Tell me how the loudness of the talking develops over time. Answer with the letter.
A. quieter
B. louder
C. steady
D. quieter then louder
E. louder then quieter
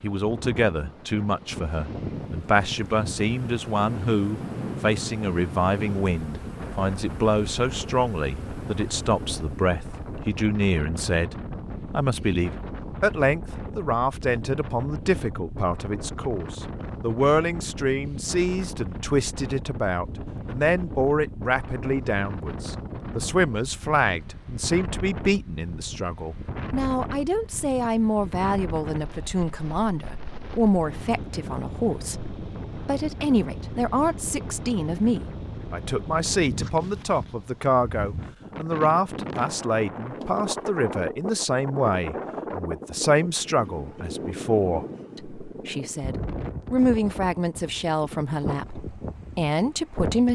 C.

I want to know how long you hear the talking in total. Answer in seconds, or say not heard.
50 s.